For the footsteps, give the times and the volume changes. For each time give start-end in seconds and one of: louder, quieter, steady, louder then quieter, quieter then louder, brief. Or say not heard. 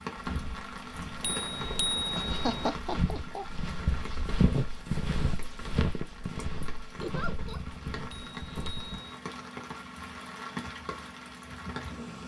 0.1-9.0 louder then quieter.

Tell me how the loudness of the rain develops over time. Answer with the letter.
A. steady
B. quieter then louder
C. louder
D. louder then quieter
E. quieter
B.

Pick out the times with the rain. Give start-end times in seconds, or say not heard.
0.0-12.2.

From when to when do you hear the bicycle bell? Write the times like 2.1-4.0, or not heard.
1.2-2.7, 8.1-9.2.